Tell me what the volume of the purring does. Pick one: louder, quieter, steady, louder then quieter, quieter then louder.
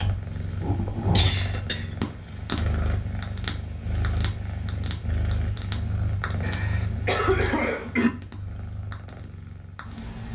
quieter.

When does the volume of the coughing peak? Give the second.
7 s.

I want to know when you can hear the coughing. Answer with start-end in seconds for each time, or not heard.
0.8-1.9, 6.4-8.1.